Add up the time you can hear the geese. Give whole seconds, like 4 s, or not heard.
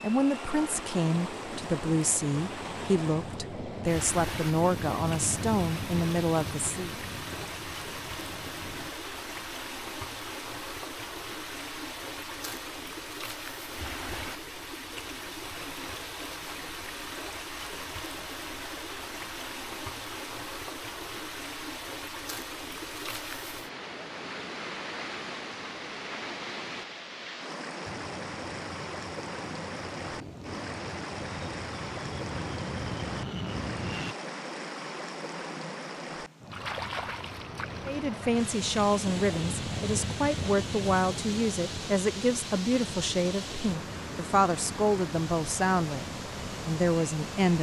not heard.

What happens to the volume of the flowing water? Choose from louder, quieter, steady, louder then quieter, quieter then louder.
steady.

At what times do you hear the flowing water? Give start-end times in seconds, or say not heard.
0.0-47.5.